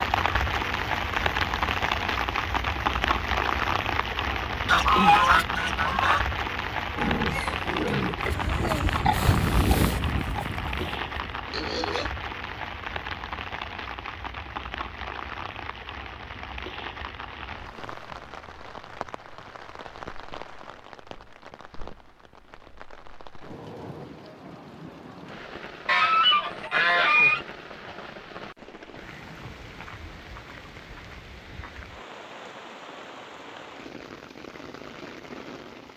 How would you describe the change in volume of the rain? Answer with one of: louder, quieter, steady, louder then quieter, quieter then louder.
quieter.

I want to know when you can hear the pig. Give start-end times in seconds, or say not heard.
6.9-12.1.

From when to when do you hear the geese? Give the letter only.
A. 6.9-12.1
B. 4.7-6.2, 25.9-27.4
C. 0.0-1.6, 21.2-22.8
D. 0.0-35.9
B.